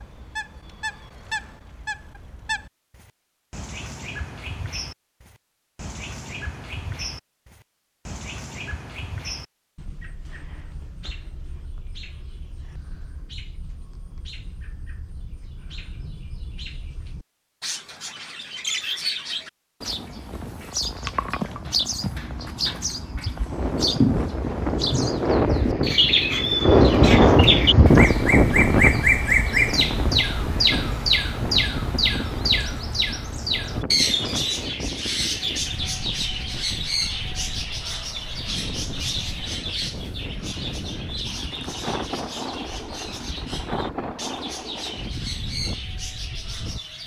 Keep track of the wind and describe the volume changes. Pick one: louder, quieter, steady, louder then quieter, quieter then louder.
quieter.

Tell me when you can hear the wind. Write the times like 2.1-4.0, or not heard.
23.4-47.0.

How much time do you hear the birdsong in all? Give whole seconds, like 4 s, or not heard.
47 s.